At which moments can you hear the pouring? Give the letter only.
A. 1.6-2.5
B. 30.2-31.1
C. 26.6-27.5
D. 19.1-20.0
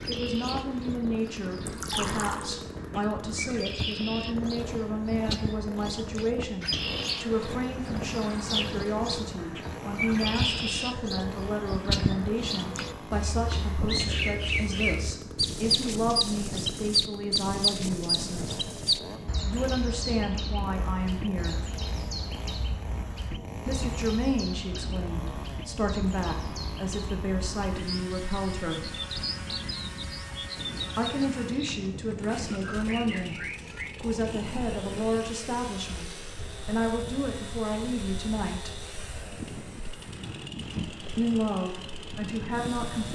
A.